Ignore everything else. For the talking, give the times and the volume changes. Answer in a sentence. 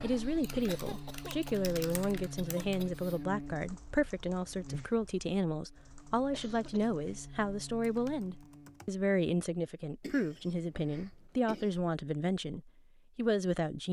You can hear the talking from 0.0 to 13.8 s, at a steady volume.